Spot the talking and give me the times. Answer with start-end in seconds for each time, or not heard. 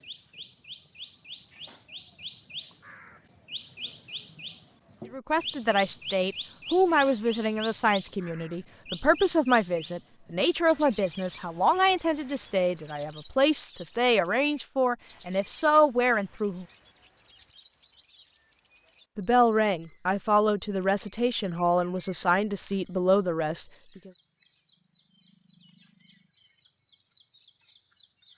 5.1-16.6, 19.1-24.1.